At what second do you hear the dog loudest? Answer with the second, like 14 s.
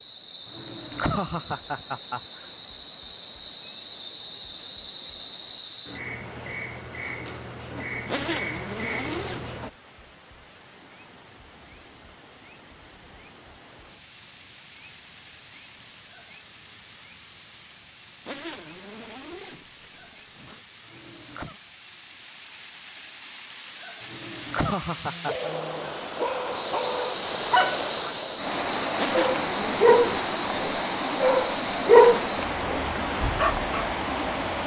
32 s.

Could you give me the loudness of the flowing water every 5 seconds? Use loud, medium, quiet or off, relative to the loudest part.
quiet, quiet, quiet, quiet, quiet, loud, loud.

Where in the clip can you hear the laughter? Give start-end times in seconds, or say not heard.
0.5-2.5, 20.8-21.6, 24.0-25.5.